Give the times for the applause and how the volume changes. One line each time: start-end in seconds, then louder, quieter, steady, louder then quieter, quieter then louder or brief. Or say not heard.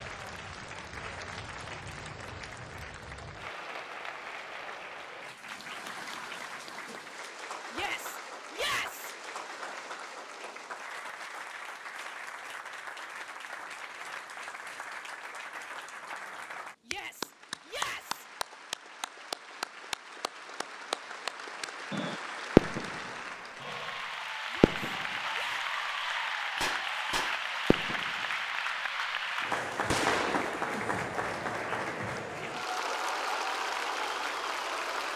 0.0-35.1 louder.